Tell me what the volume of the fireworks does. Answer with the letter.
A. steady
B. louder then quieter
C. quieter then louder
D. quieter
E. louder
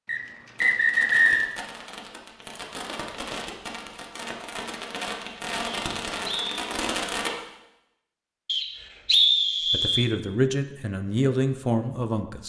E.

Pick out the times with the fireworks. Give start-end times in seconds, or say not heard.
0.6-7.3.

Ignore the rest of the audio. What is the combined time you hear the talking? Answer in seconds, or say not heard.
3 s.